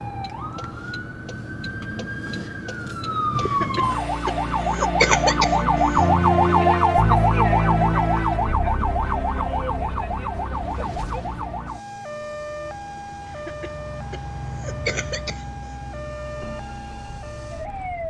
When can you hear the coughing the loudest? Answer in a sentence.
The volume of the coughing peaks at 5 seconds.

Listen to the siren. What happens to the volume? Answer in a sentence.
The volume of the siren goes up, then down.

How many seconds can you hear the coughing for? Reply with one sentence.
The coughing can be heard for 5 seconds in total.